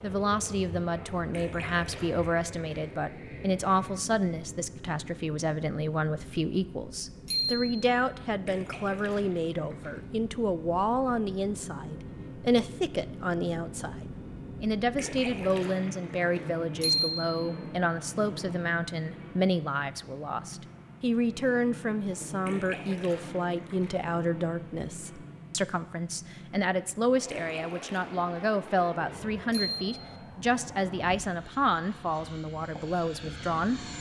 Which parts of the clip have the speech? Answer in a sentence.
You can hear the speech from 0.0 to 33.9 s.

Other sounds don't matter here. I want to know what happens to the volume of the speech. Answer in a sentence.
The loudness of the speech stays about the same.